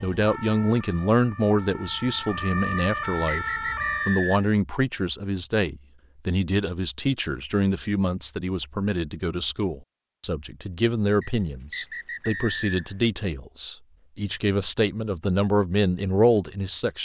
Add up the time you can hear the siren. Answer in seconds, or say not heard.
4 s.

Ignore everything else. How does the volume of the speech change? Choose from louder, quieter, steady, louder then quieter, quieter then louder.
steady.